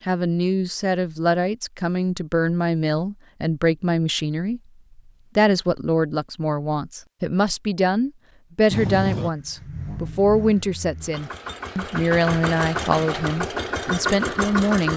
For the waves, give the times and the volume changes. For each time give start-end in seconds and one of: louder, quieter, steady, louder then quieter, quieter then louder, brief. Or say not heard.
not heard.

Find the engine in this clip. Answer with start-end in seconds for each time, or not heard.
8.7-14.9.